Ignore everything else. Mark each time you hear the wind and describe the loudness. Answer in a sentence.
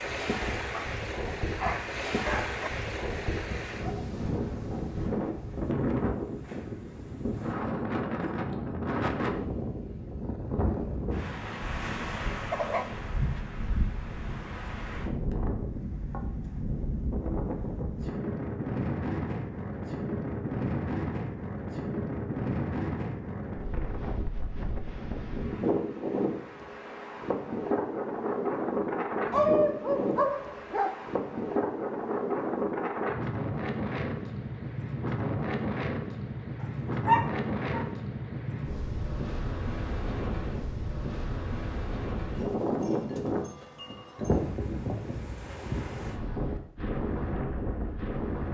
You can hear the wind from 0.0 to 48.5 s, at a steady volume.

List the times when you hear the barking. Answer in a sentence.
The barking can be heard from 0.7 to 2.7 s, from 12.4 to 13.4 s, from 29.3 to 30.9 s and from 37.0 to 37.9 s.